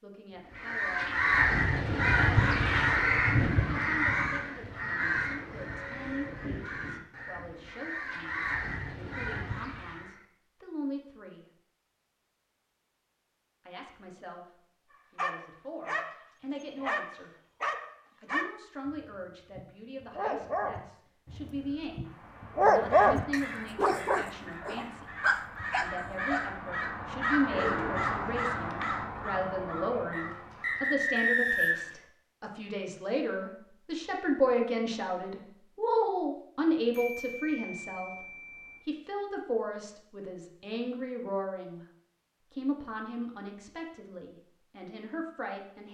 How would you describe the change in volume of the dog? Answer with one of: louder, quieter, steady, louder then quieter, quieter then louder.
louder then quieter.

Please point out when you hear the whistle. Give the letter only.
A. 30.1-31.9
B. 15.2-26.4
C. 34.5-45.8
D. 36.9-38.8
A.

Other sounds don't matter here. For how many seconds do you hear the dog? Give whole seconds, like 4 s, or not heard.
11 s.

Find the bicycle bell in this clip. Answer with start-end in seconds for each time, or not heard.
36.9-38.8.